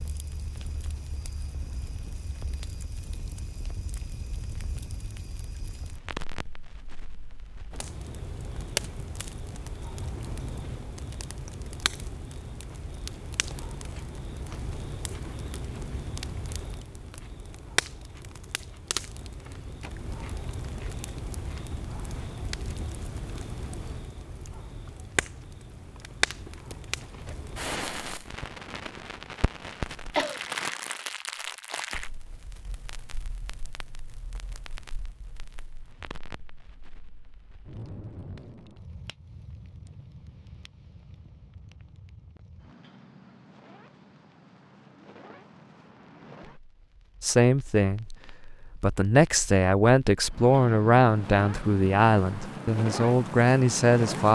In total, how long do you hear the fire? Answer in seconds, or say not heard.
54 s.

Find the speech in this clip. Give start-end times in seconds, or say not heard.
47.2-54.3.